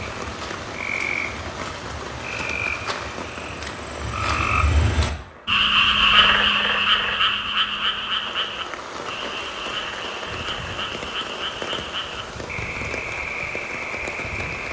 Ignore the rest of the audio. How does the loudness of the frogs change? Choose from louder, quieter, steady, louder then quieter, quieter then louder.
louder then quieter.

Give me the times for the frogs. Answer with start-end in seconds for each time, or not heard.
0.0-14.6.